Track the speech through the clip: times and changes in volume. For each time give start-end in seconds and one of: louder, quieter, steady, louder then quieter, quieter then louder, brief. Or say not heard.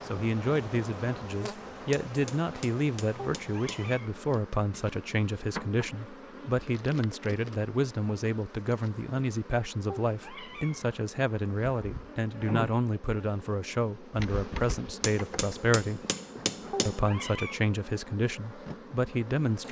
0.1-16.1 steady
16.9-19.6 brief.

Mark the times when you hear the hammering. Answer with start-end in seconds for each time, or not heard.
1.9-3.9, 15.0-17.0.